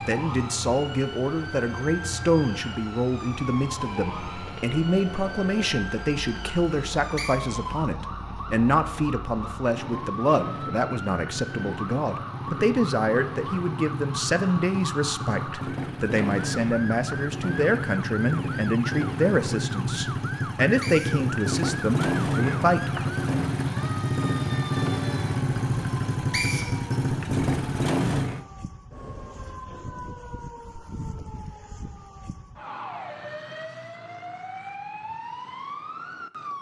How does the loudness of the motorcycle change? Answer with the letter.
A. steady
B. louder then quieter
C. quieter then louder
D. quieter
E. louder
E.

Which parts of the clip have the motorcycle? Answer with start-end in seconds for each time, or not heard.
0.0-28.4.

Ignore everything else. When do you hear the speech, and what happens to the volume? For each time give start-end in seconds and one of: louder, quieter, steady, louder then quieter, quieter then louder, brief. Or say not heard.
0.1-23.1 steady.